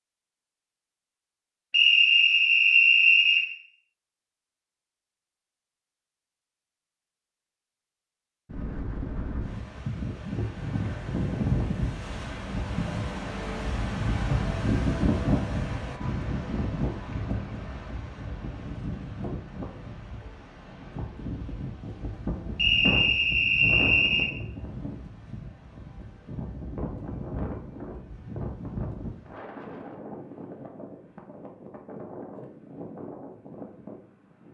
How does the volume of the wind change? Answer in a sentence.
The loudness of the wind goes down.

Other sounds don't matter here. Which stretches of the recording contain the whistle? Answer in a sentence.
You can hear the whistle from 1.7 to 3.5 s and from 22.6 to 24.3 s.